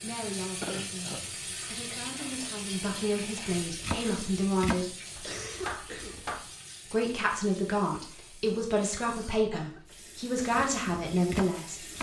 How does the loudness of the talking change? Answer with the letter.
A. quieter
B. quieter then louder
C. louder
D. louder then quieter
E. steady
C.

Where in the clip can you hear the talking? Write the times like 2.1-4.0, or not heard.
0.0-5.0, 6.9-11.8.